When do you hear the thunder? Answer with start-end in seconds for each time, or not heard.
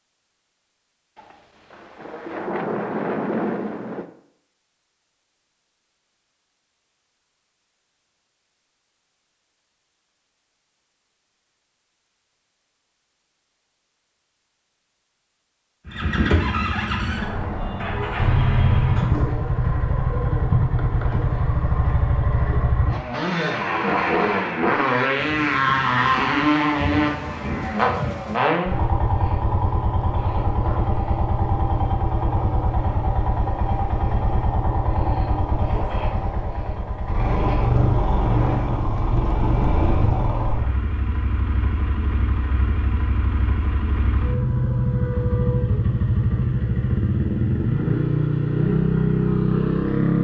1.1-4.1, 25.1-28.4, 37.6-40.4.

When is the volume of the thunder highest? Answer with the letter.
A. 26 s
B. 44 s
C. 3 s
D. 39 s
C.